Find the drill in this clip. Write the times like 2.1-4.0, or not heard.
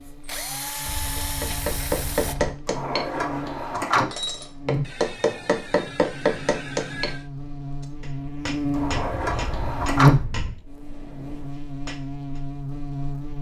0.0-2.4.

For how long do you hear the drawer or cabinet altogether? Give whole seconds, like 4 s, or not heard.
3 s.